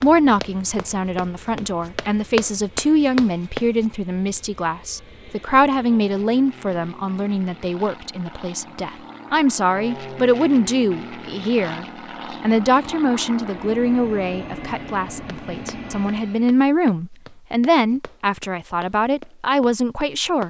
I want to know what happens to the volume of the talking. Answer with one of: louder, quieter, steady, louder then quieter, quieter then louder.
steady.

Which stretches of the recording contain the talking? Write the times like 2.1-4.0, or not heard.
0.0-20.4.